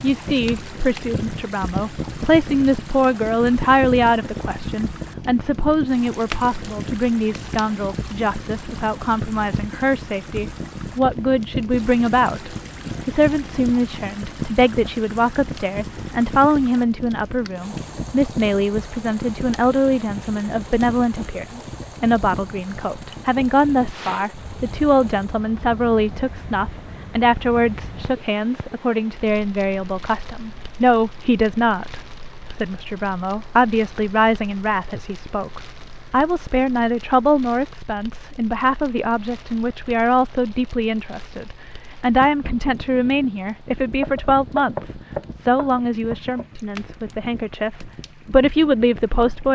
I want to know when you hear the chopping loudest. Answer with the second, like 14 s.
45 s.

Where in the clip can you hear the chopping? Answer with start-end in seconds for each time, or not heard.
43.9-46.5.